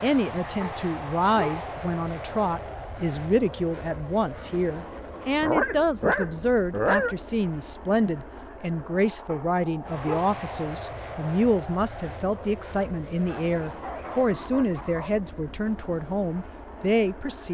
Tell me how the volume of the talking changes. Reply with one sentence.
The volume of the talking stays about the same.